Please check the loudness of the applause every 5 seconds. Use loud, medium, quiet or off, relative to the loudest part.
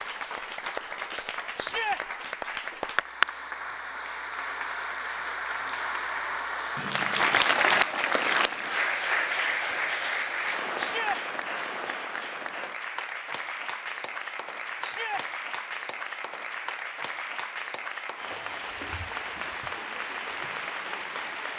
medium, loud, medium, medium, medium.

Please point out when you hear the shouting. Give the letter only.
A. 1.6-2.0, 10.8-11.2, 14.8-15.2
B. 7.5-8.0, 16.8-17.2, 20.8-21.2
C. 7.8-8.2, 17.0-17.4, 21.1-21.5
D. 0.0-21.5
A.